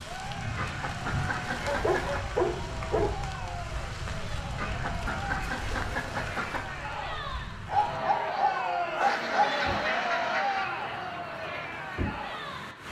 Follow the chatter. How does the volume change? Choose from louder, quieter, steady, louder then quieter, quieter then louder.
louder.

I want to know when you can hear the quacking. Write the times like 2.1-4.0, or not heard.
0.6-2.2, 4.5-6.8, 9.0-10.8.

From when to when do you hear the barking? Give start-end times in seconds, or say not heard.
1.6-3.1, 7.7-9.5.